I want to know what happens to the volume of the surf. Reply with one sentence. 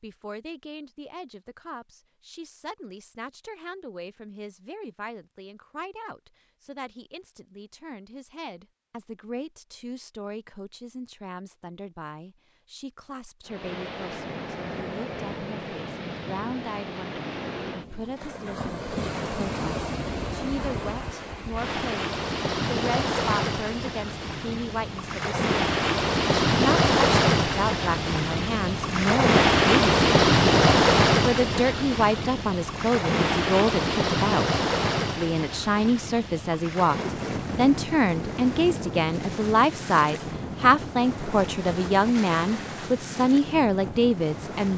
The volume of the surf goes up, then down.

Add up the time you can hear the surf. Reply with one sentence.
You can hear the surf for 31 seconds altogether.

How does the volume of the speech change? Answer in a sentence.
The volume of the speech goes up.